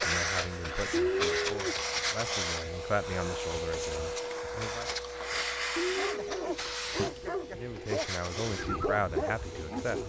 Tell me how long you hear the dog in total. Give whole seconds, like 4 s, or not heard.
4 s.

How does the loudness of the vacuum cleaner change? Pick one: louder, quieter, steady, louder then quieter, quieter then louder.
quieter.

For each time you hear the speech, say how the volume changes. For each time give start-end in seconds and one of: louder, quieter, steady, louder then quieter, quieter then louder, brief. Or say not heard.
0.0-4.9 louder then quieter
7.5-10.0 brief.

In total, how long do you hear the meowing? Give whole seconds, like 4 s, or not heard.
2 s.